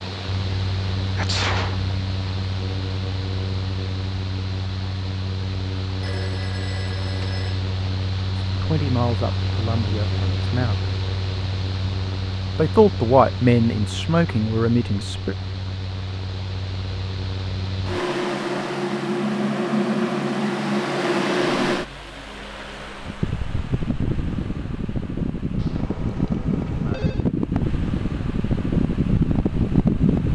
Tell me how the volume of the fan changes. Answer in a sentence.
The volume of the fan goes up.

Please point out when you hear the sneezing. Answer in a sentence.
The sneezing can be heard from 1.1 to 1.9 s.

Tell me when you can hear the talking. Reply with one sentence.
You can hear the talking from 8.4 to 10.9 s and from 12.6 to 15.3 s.